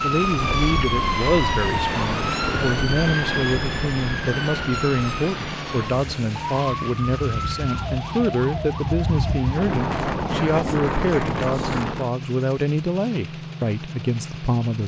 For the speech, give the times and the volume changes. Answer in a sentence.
The speech can be heard from 0.0 to 14.8 s, at a steady volume.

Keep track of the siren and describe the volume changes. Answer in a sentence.
The loudness of the siren goes down.